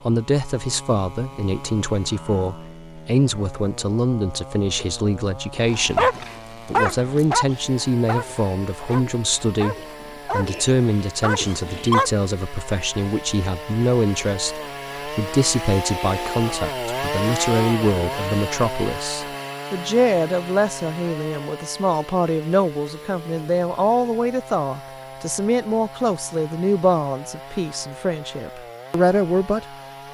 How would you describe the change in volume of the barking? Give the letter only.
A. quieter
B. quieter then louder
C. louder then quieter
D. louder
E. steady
B.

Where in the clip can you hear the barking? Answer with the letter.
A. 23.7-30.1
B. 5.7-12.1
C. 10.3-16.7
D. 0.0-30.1
B.